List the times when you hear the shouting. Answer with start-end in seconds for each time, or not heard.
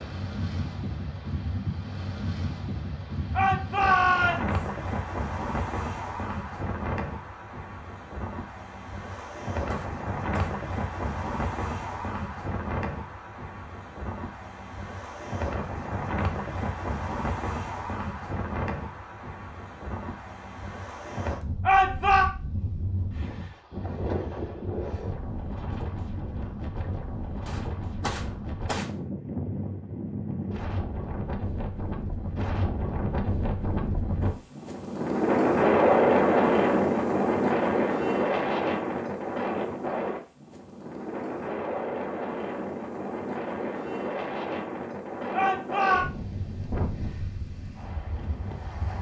3.4-4.6, 21.6-22.2, 45.3-46.0.